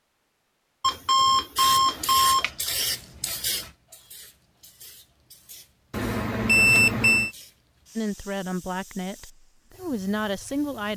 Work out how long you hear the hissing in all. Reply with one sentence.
The hissing can be heard for 9 seconds in total.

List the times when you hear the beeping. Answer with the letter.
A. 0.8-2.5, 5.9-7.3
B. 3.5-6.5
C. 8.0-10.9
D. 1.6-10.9
A.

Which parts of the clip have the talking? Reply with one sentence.
The talking can be heard from 8.0 to 10.9 s.